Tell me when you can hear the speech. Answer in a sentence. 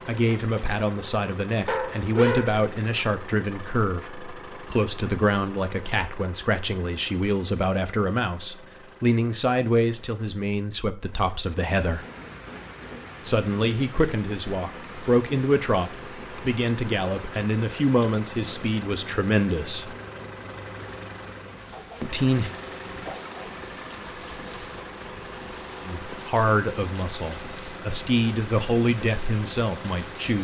You can hear the speech from 0.1 to 12.1 s, from 13.2 to 19.9 s, from 22.0 to 22.5 s and from 25.9 to 30.3 s.